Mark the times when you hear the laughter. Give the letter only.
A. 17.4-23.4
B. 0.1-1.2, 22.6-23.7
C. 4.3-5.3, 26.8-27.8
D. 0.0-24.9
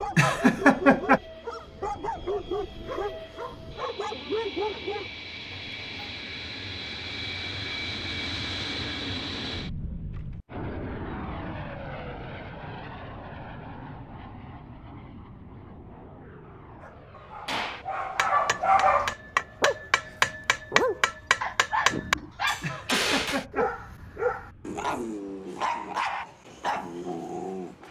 B.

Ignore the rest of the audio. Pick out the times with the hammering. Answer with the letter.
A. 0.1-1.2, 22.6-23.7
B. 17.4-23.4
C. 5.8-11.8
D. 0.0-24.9
B.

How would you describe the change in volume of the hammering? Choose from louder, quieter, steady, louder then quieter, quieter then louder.
louder.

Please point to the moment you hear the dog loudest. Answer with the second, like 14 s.
19 s.